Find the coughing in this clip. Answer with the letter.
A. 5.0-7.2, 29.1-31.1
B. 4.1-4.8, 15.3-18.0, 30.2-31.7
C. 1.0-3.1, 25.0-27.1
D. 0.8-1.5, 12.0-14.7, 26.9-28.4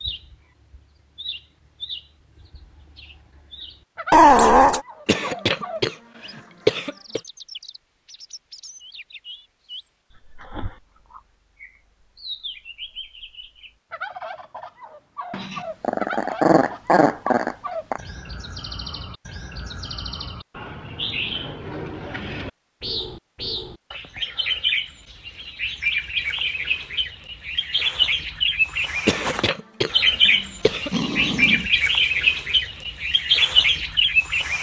A.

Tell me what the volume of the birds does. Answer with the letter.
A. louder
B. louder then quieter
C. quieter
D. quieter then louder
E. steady
A.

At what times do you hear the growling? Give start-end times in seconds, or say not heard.
4.1-4.8, 15.3-18.0, 30.2-31.7.